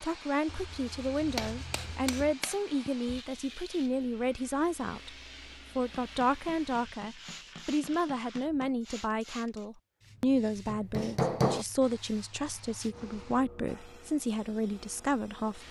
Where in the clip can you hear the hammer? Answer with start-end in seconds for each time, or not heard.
1.2-3.2, 6.0-8.8, 10.7-11.7.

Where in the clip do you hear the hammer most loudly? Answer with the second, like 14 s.
11 s.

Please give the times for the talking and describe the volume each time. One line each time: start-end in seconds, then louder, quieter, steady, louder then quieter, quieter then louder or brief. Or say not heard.
0.0-5.2 steady
5.8-15.6 steady.